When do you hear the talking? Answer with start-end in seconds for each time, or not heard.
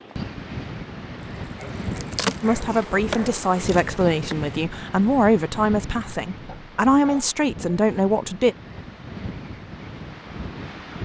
2.4-8.6.